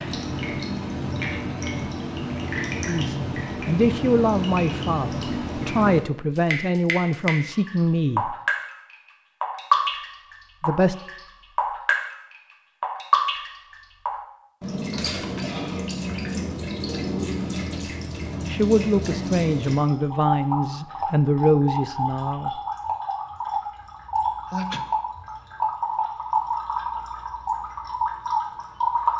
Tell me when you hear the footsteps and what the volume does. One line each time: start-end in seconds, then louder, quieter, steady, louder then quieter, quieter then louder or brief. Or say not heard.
not heard.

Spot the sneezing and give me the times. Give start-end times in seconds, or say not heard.
24.4-24.9.